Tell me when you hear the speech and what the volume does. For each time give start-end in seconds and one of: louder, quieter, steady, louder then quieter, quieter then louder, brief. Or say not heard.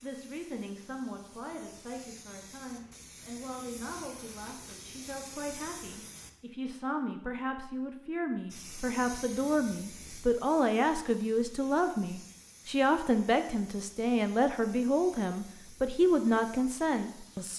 0.0-17.5 louder.